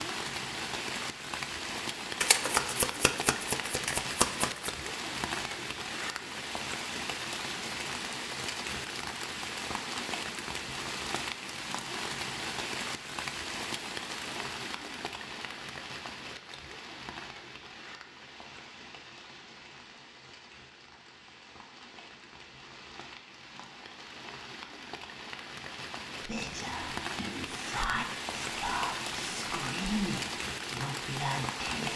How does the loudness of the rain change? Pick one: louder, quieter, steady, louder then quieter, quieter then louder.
quieter then louder.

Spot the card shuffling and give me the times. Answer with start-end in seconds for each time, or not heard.
2.2-4.8.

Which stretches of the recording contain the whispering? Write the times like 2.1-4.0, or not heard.
26.2-31.9.